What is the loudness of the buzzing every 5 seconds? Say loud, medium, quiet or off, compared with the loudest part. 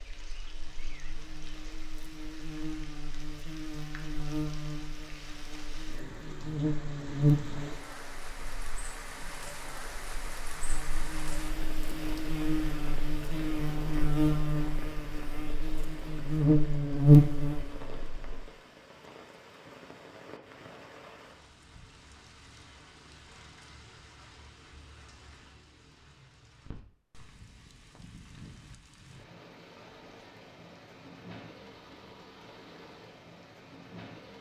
quiet, medium, medium, loud, off, off, off.